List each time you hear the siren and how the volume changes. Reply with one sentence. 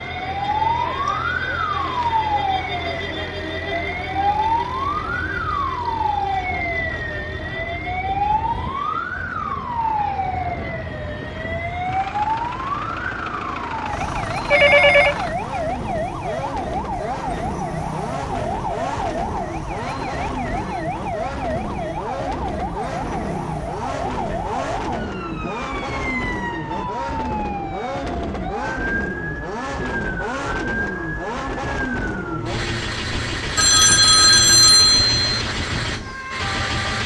The siren can be heard from 0.0 to 37.0 s, getting quieter.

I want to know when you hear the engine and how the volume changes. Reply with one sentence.
You can hear the engine from 0.0 to 37.0 s, getting louder.